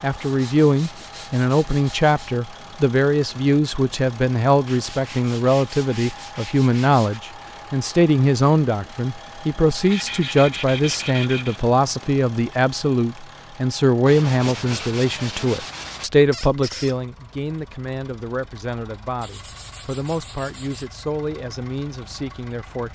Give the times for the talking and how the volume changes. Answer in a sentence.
The talking can be heard from 0.0 to 22.8 s, getting quieter.